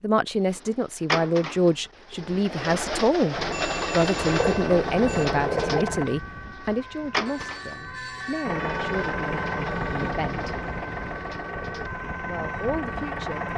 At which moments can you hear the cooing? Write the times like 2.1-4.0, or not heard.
0.3-11.9.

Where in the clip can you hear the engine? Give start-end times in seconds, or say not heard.
3.4-6.1, 8.4-13.5.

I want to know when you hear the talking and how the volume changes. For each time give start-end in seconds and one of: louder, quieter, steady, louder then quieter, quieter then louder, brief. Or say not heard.
0.0-10.6 quieter
12.2-13.4 brief.